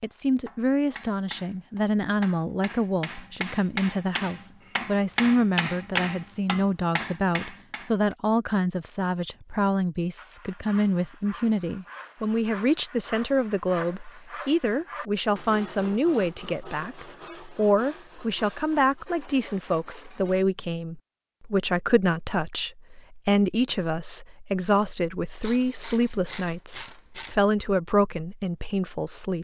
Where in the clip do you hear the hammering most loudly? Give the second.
6 s.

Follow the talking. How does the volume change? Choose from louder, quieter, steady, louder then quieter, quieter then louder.
steady.